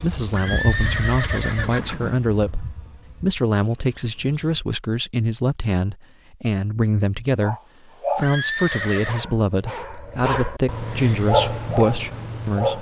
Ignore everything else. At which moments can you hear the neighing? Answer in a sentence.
The neighing can be heard from 0.3 to 2.2 s and from 8.2 to 9.2 s.